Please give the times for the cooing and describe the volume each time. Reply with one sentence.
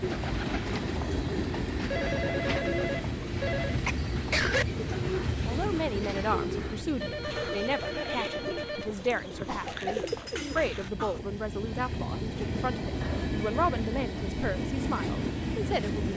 You can hear the cooing from 0.0 to 10.9 s, at a steady volume.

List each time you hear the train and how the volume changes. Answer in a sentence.
You can hear the train from 0.0 to 16.1 s, getting quieter then louder.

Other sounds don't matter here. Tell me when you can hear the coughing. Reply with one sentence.
The coughing can be heard from 3.8 to 4.7 s and from 9.3 to 11.2 s.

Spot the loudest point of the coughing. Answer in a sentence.
The volume of the coughing peaks at 4 seconds.